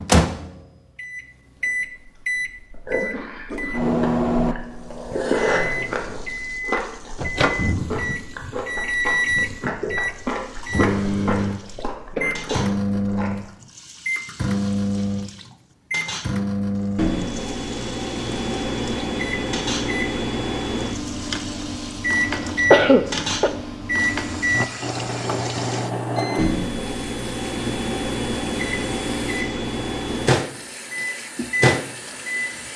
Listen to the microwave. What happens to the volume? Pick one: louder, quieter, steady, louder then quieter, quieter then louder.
steady.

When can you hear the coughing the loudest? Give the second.
23 s.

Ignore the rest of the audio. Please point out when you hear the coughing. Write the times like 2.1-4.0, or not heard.
3.0-4.6, 12.1-12.6, 22.4-23.5.